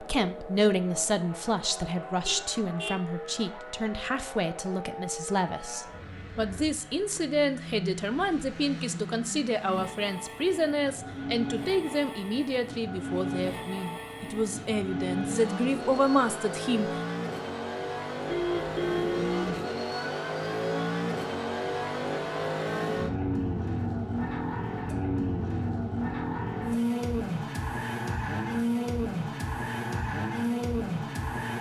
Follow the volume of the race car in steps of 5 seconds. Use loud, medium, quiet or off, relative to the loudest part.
medium, medium, medium, loud, loud, loud, loud.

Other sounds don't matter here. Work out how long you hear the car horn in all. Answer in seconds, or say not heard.
2 s.